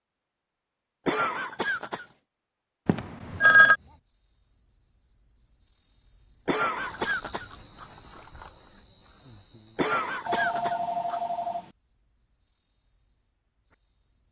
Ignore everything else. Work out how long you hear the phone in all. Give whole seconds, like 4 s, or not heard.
2 s.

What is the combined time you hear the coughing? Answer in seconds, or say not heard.
4 s.